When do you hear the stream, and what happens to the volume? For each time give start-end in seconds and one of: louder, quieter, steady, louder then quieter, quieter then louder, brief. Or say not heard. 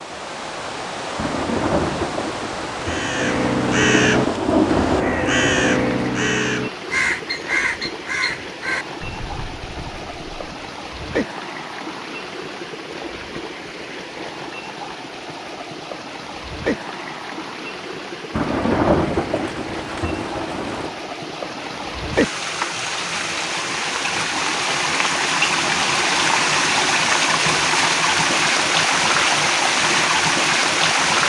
0.0-31.2 louder.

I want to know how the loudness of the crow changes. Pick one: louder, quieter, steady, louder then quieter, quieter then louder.
quieter.